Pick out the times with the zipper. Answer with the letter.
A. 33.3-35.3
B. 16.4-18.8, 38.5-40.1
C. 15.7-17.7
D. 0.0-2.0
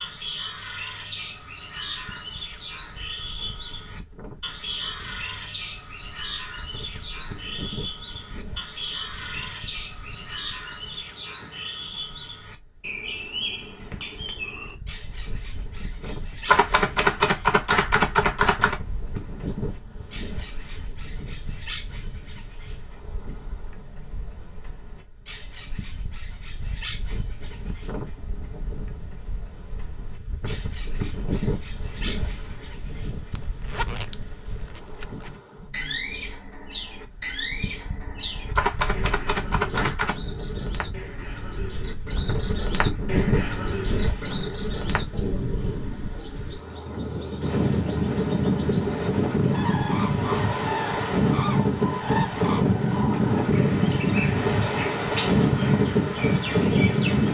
A.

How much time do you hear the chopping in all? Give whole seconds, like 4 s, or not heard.
4 s.